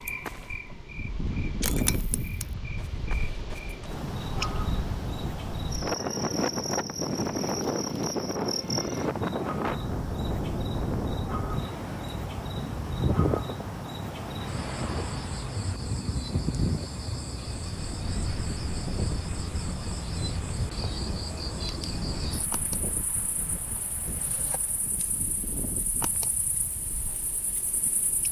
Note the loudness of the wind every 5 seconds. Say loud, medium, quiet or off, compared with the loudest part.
medium, loud, loud, medium, medium, quiet.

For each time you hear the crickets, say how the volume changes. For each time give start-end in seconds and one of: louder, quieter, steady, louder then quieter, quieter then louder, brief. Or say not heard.
0.0-28.2 quieter.